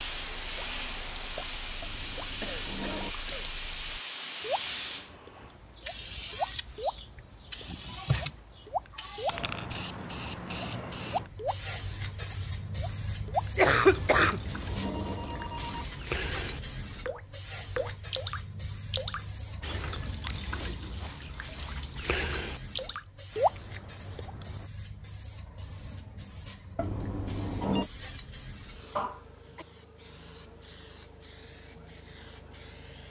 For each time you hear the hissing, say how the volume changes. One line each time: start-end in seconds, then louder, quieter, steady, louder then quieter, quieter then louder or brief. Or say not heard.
0.0-33.0 quieter.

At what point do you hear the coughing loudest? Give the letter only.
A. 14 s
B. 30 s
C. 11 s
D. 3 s
A.